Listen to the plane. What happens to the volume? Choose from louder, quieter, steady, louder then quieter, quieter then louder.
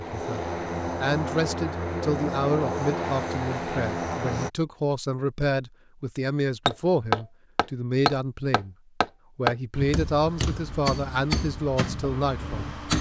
steady.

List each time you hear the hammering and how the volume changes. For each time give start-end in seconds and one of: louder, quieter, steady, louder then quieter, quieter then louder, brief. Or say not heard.
6.7-12.9 quieter.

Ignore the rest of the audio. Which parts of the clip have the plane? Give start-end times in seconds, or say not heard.
0.0-4.5.